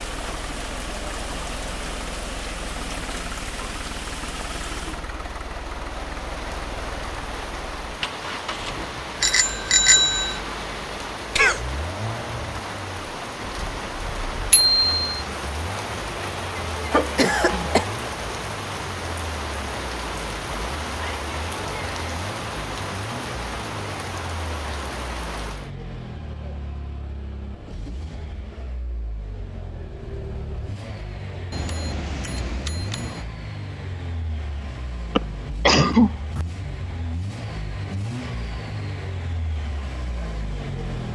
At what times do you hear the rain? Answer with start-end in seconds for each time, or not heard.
0.0-25.7.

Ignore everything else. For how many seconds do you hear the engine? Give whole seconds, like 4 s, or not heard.
41 s.